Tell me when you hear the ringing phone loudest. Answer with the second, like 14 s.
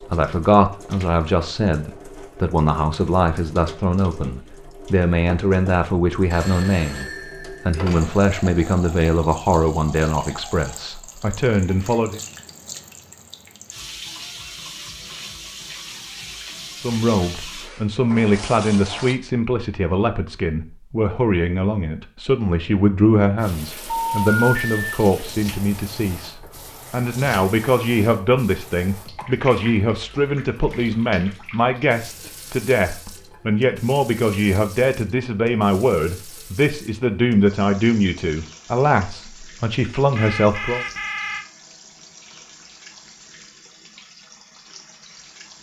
24 s.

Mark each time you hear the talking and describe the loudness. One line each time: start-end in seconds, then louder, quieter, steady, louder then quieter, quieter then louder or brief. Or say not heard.
0.0-12.2 steady
16.8-40.8 steady.